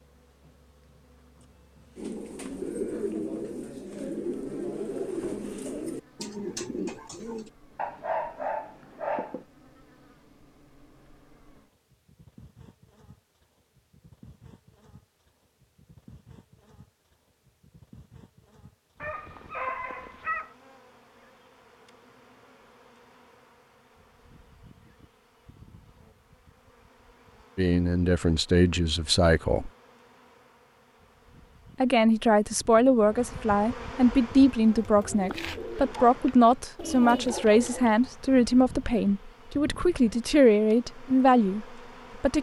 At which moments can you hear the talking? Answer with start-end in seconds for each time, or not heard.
27.6-29.7, 31.8-42.3.